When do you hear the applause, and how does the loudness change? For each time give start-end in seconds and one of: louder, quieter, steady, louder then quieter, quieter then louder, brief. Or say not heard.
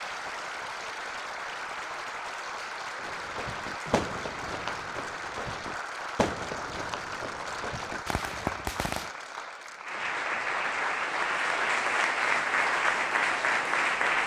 0.0-14.2 louder.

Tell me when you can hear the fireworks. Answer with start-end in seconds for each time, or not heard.
3.0-9.1.